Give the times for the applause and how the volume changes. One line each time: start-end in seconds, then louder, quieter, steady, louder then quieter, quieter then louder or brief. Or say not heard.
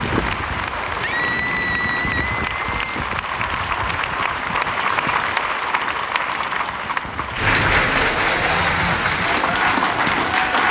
0.0-10.6 louder.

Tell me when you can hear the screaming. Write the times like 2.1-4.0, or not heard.
1.0-3.0.